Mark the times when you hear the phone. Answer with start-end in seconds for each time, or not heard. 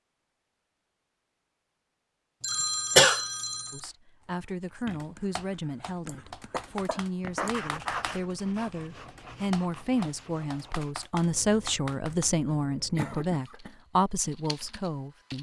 2.4-3.8.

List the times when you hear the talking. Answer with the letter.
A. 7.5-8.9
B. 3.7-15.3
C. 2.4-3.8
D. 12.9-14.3
B.